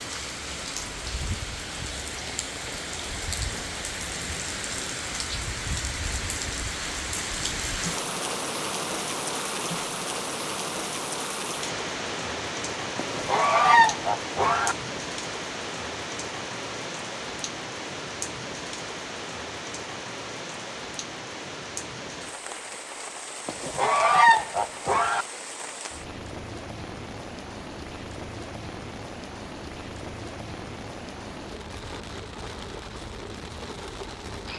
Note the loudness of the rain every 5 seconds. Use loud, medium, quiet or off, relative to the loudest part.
loud, loud, loud, loud, medium, medium, medium.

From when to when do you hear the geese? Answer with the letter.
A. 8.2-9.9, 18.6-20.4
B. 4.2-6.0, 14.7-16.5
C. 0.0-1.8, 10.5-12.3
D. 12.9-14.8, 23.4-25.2
D.